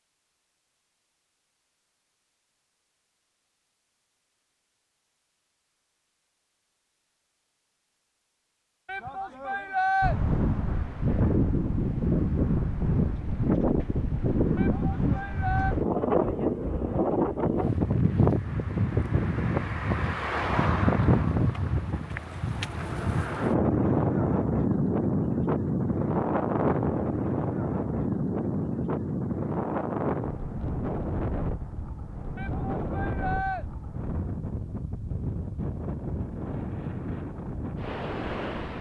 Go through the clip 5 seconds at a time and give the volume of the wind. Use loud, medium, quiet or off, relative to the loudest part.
off, off, loud, loud, loud, loud, medium, medium.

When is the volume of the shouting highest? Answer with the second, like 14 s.
10 s.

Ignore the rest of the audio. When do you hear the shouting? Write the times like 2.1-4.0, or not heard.
8.8-10.2, 14.6-15.8, 32.4-33.6.